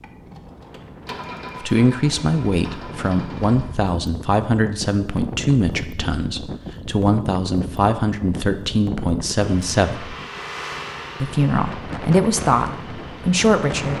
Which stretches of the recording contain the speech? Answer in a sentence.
The speech can be heard from 1.6 to 10.2 s and from 11.2 to 13.9 s.